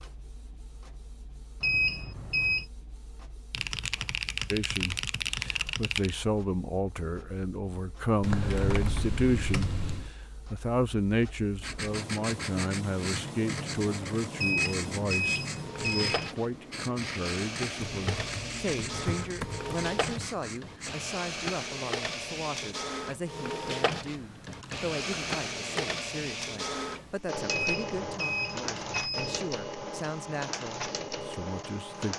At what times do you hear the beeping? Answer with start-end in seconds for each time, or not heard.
1.6-2.6, 14.3-16.3, 27.4-29.4.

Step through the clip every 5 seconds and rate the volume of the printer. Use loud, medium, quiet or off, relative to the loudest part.
quiet, quiet, medium, loud, loud, loud, loud.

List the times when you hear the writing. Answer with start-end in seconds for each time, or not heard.
11.6-21.0.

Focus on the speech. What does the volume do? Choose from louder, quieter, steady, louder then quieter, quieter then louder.
quieter.